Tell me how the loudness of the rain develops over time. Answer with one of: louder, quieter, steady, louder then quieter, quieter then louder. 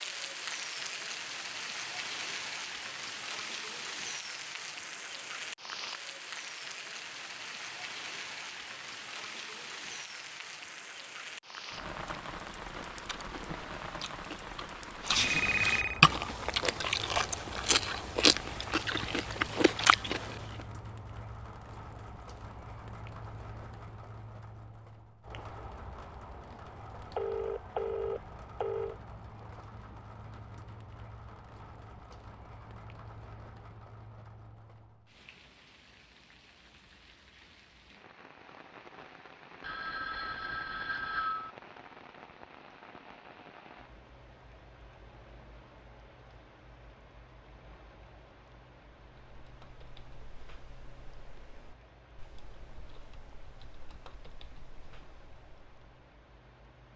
quieter.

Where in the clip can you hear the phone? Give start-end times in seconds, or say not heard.
15.2-16.0, 27.1-28.9, 39.6-41.5.